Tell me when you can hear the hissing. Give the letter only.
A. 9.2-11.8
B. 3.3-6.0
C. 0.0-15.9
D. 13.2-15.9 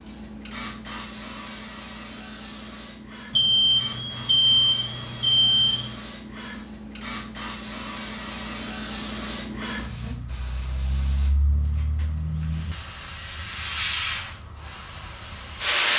C.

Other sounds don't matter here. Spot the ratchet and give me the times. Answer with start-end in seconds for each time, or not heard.
not heard.